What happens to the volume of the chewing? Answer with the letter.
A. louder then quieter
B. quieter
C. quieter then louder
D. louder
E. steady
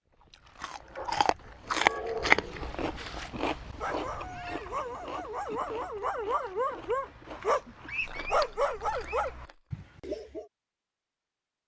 B.